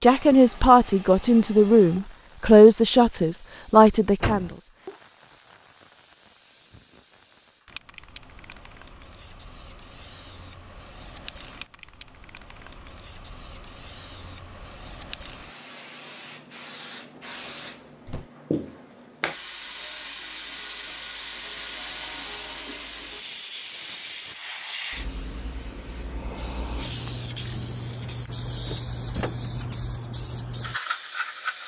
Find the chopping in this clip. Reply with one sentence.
You can't hear the chopping here.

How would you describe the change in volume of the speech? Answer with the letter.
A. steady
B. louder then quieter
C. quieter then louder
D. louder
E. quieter
A.